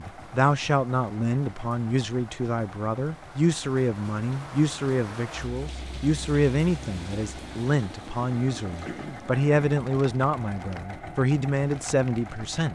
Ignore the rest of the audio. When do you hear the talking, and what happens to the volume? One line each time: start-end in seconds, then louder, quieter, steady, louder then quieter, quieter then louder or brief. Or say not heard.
0.0-12.7 steady.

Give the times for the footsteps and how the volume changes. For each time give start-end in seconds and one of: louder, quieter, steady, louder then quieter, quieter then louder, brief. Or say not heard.
not heard.